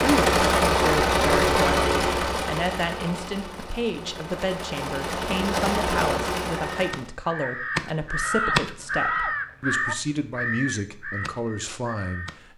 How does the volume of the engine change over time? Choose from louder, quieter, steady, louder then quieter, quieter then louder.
quieter then louder.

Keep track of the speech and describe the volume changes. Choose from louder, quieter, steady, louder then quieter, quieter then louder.
steady.